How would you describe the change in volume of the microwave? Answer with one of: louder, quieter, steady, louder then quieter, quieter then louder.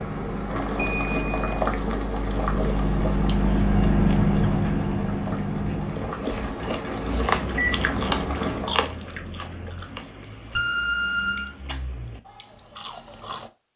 louder then quieter.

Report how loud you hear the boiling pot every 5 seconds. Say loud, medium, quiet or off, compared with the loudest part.
loud, loud, off.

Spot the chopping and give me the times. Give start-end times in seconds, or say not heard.
not heard.